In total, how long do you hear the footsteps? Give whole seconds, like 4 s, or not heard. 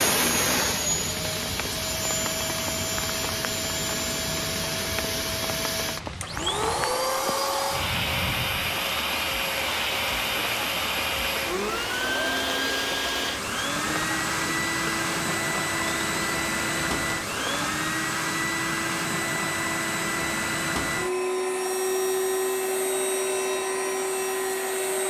not heard.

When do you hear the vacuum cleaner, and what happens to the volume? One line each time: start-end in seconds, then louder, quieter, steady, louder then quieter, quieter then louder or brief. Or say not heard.
0.0-25.0 steady.